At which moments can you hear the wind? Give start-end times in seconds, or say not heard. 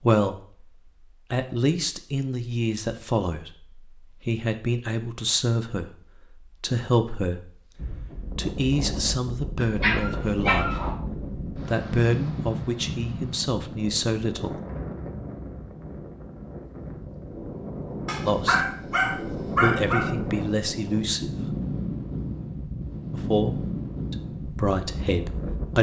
7.8-25.7.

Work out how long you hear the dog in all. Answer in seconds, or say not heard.
3 s.